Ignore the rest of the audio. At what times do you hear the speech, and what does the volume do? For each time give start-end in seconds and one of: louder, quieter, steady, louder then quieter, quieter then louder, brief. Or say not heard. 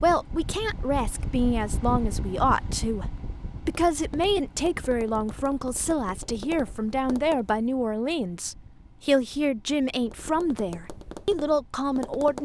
0.0-12.4 steady.